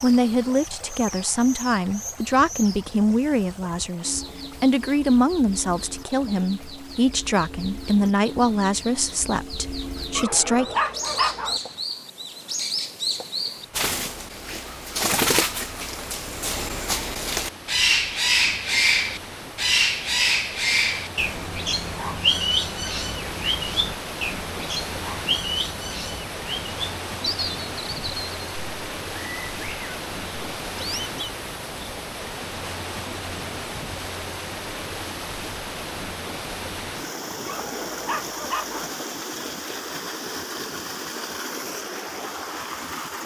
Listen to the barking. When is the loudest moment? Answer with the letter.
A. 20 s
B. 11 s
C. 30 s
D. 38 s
B.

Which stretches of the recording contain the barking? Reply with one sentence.
The barking can be heard from 10.2 to 11.6 s and from 37.5 to 38.9 s.